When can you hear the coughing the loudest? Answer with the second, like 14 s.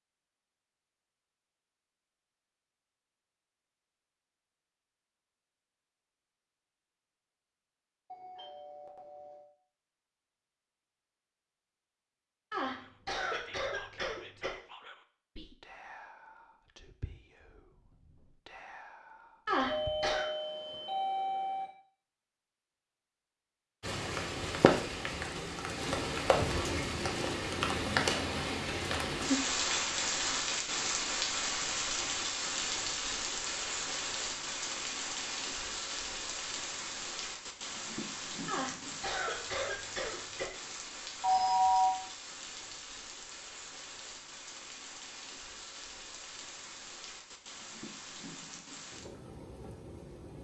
20 s.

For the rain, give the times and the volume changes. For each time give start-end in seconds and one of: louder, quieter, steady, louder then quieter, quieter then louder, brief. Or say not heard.
23.8-50.3 quieter.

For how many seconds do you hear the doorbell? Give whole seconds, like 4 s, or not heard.
4 s.